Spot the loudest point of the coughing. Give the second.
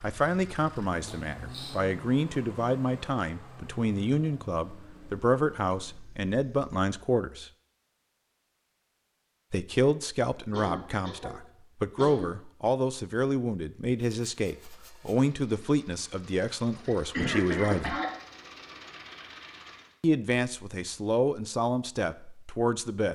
17 s.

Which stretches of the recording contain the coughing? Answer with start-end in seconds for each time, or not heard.
1.1-1.8, 10.5-12.3, 16.9-18.1.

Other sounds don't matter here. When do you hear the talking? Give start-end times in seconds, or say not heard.
0.0-7.5, 9.5-18.0, 20.0-23.1.